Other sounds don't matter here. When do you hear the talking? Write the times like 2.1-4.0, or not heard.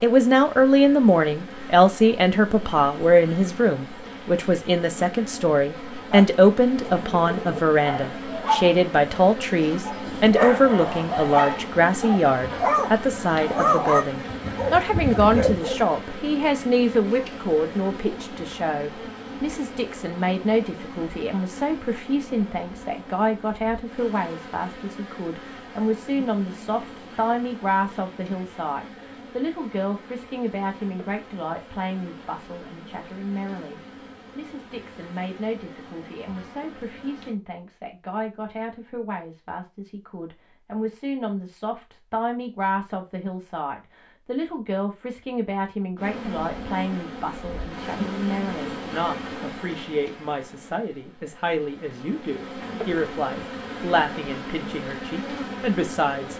0.0-56.3.